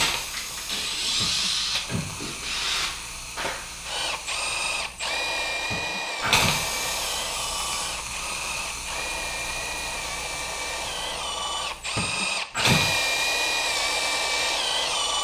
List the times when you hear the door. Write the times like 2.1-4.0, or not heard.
1.1-2.1, 5.7-6.5, 11.9-12.9.